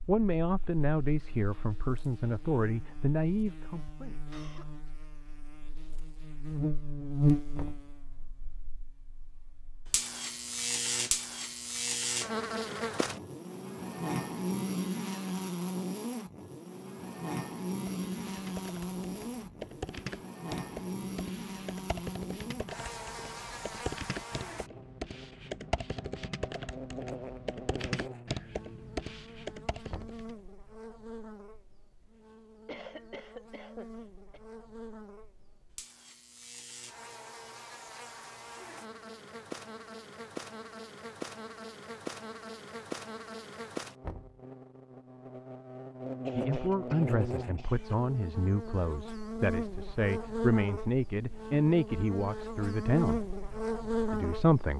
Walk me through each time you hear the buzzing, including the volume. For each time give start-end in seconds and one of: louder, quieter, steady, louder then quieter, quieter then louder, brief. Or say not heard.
0.1-54.7 quieter then louder.